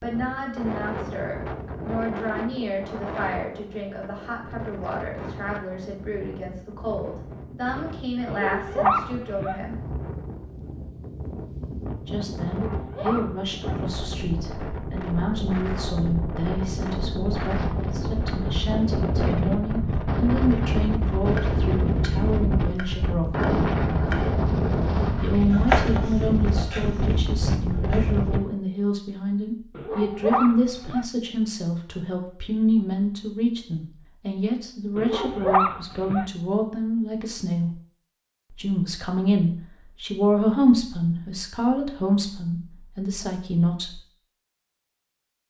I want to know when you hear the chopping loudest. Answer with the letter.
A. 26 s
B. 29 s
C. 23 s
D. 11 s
A.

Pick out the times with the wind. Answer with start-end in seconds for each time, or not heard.
0.0-28.4.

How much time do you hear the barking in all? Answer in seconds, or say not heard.
5 s.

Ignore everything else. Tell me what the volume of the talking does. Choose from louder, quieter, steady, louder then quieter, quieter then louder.
louder.